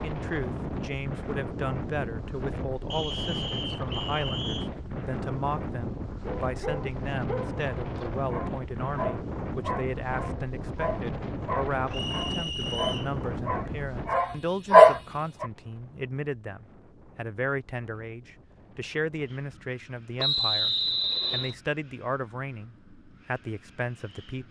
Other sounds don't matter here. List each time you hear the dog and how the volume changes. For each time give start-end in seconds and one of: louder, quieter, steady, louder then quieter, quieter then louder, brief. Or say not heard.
6.2-15.4 louder.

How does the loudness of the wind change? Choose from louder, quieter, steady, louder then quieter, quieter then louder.
quieter.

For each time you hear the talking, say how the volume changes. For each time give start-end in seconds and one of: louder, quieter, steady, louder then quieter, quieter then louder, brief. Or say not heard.
0.0-24.4 steady.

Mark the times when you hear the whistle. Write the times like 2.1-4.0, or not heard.
2.9-4.7, 11.9-13.2, 20.1-21.6.